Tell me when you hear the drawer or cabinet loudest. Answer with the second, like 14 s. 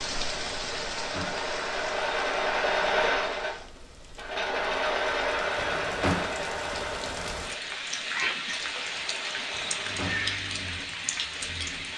6 s.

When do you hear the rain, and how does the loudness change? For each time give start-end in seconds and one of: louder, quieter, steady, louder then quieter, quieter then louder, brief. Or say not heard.
0.0-11.9 quieter then louder.